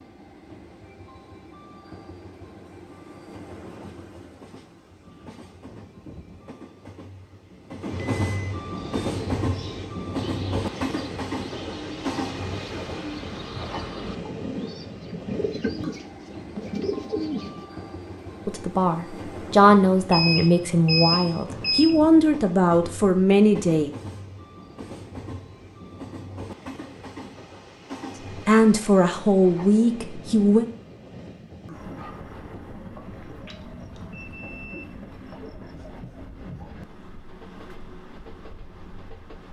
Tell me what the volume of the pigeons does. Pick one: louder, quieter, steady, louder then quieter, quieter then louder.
louder.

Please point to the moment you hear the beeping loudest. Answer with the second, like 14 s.
21 s.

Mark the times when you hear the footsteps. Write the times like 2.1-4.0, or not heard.
not heard.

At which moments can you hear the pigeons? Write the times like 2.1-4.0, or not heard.
8.8-17.6.